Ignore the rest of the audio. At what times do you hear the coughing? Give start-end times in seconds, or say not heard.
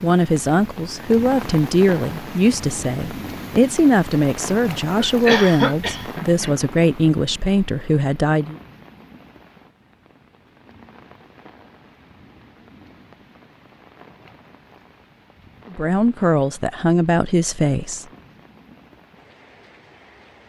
5.0-6.5.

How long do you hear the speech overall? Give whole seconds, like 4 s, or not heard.
11 s.